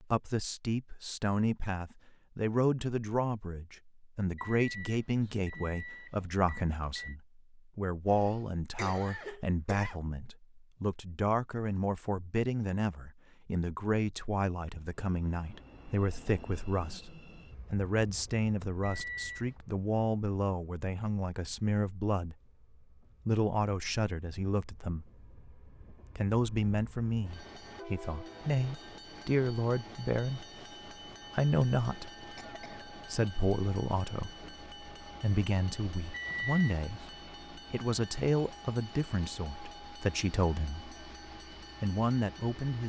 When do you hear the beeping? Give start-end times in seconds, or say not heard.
4.3-7.2, 18.8-19.5, 36.1-37.1.